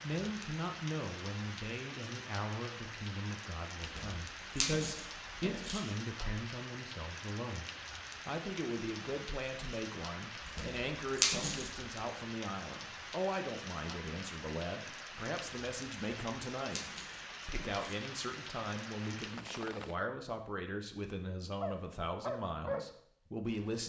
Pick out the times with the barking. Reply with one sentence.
You can hear the barking from 21.6 to 23.8 s.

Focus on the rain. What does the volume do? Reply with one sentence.
The loudness of the rain stays about the same.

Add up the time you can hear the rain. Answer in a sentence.
You can hear the rain for 20 seconds altogether.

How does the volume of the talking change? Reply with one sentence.
The loudness of the talking stays about the same.